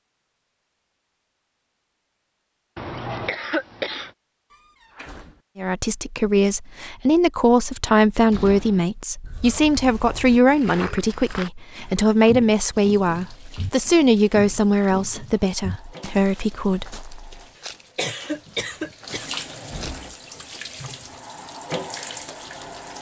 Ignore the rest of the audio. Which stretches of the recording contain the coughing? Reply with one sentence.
The coughing can be heard from 2.8 to 4.1 s, from 9.2 to 10.4 s and from 17.9 to 19.3 s.